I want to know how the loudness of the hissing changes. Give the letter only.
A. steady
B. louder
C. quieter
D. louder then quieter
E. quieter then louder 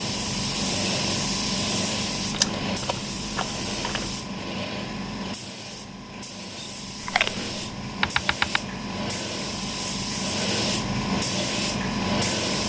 E.